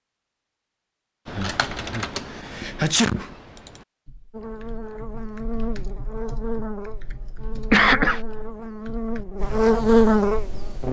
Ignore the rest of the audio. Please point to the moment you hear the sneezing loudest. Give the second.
8 s.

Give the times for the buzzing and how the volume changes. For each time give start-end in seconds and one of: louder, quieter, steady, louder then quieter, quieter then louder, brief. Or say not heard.
4.3-10.8 quieter then louder.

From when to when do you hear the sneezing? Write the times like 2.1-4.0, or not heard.
1.4-3.3, 7.5-8.2.